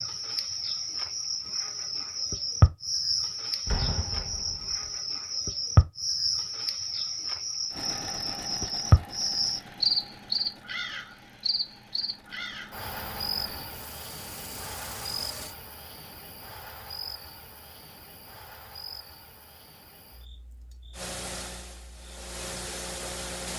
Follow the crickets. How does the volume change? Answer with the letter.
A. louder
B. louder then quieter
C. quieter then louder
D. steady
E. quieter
E.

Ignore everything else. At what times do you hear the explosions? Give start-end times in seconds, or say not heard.
3.6-4.9.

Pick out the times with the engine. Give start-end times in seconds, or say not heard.
7.7-15.6, 20.9-23.5.